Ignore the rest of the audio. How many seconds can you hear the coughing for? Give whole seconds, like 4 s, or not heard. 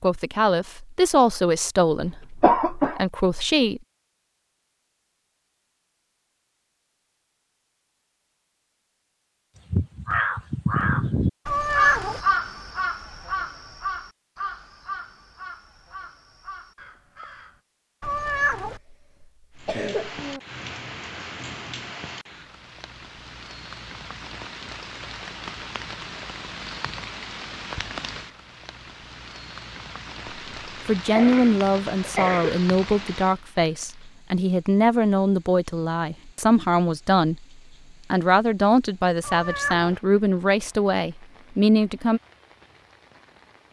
4 s.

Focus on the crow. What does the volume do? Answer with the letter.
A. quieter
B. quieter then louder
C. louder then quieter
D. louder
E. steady
A.